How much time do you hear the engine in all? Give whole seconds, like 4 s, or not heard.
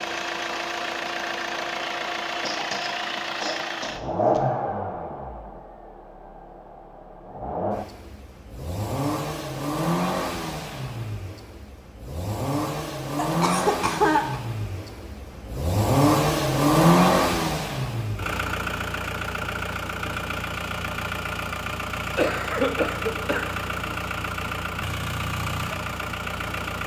27 s.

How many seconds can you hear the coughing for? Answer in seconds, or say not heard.
5 s.